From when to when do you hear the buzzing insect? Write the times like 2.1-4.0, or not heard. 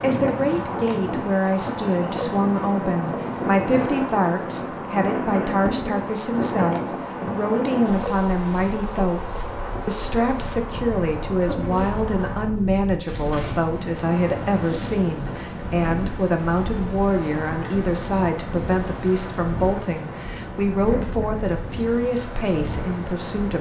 0.0-12.6.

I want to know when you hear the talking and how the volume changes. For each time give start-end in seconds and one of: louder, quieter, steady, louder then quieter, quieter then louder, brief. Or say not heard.
0.0-23.5 steady.